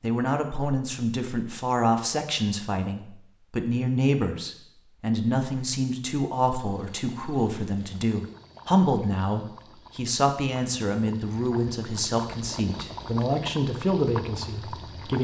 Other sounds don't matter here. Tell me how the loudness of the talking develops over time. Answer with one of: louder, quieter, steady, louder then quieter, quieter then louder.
steady.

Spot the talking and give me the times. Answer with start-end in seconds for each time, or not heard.
0.0-15.1.